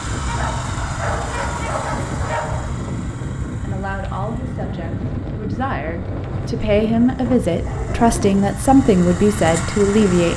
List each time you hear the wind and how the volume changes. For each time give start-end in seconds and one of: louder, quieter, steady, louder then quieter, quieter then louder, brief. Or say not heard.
0.0-10.3 steady.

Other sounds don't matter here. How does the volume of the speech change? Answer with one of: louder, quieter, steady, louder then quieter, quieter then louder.
louder.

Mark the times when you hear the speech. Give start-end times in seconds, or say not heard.
3.6-10.3.